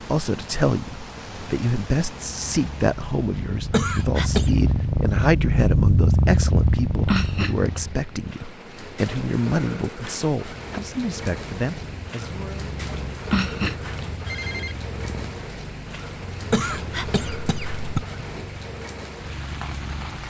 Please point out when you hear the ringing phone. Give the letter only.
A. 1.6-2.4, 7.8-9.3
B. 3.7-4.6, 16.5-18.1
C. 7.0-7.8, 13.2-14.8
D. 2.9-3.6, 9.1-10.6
C.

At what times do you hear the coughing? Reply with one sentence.
You can hear the coughing from 3.7 to 4.6 s and from 16.5 to 18.1 s.